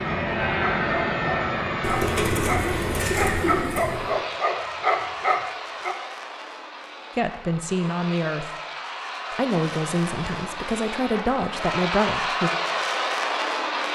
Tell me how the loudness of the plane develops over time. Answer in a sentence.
The volume of the plane goes down, then up.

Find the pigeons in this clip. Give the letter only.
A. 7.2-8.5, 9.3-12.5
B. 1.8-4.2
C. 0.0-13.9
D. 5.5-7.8
B.